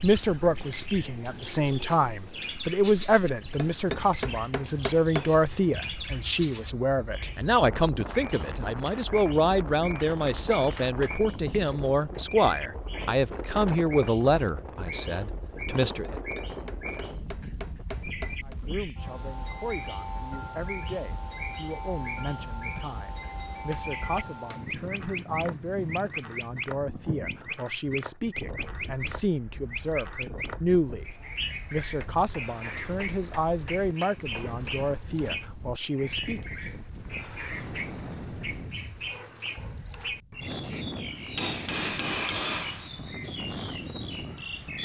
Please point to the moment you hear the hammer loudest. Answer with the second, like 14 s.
42 s.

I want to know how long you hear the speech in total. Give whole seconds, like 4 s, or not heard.
34 s.